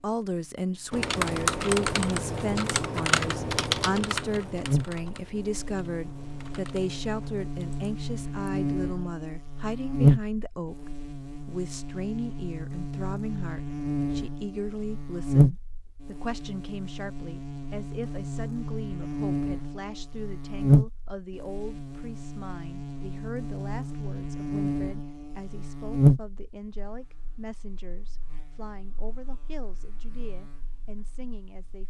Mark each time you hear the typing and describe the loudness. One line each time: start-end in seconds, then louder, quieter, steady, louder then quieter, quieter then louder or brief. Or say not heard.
0.9-8.4 quieter.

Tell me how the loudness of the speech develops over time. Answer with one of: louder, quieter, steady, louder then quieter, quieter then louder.
quieter.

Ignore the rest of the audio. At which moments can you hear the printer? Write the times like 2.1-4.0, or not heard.
not heard.